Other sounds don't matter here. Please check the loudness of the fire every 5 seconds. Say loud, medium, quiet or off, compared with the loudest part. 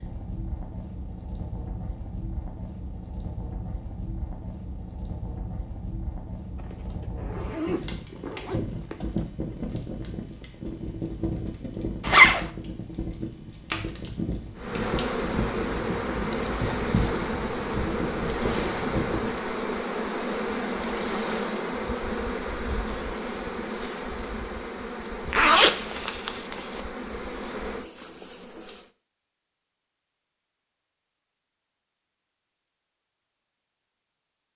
medium, loud, loud, loud, off, off, off.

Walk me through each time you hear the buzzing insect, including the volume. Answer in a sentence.
You can hear the buzzing insect from 14.6 to 28.9 s, getting quieter.